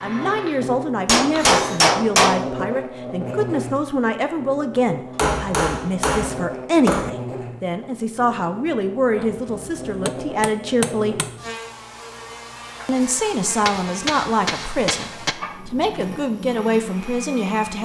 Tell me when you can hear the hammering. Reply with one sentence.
The hammering can be heard from 1.1 to 2.5 s, from 5.2 to 7.1 s, from 9.2 to 11.3 s and from 13.7 to 15.3 s.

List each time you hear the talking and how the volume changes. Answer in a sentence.
You can hear the talking from 0.0 to 11.2 s, at a steady volume; and from 12.8 to 17.8 s, getting quieter then louder.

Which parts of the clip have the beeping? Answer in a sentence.
You can't hear the beeping here.